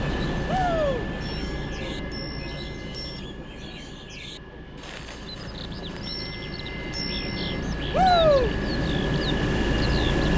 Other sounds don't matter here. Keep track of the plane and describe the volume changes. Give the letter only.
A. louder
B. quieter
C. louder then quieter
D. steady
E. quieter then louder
E.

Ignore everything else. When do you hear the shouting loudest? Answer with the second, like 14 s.
8 s.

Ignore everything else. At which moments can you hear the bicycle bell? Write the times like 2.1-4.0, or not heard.
1.4-3.2, 6.0-7.7.